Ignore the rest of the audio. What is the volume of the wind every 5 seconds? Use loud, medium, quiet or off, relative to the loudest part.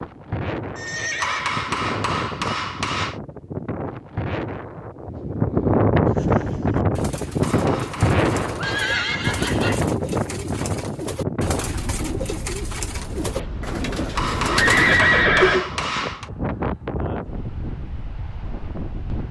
medium, loud, medium, medium.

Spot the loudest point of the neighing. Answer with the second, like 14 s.
15 s.